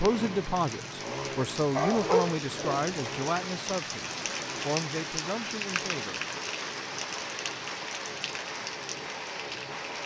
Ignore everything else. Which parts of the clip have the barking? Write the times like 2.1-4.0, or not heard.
1.8-3.0.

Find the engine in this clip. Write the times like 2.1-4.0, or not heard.
0.0-10.0.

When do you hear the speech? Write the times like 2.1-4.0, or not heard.
0.0-6.2.